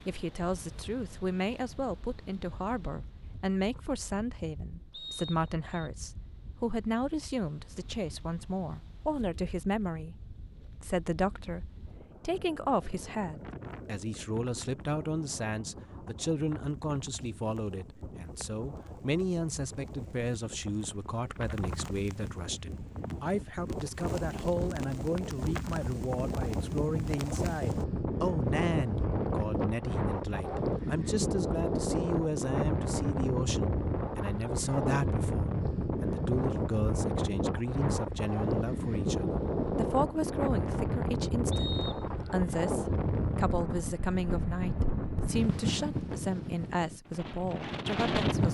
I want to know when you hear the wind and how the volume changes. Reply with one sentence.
The wind can be heard from 0.0 to 48.5 s, getting louder.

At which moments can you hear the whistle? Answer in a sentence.
The whistle can be heard from 4.9 to 5.9 s and from 41.5 to 42.0 s.